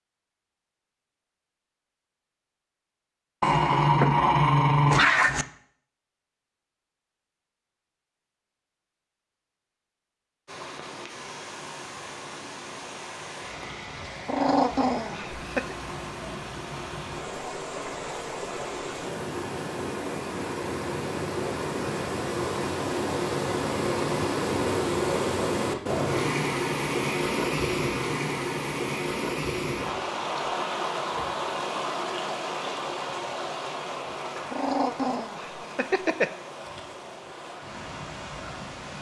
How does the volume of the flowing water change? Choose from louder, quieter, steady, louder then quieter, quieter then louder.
louder then quieter.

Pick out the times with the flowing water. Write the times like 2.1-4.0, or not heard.
10.4-38.9.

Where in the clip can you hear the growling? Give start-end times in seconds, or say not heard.
3.4-5.5, 14.2-15.8, 34.5-36.3.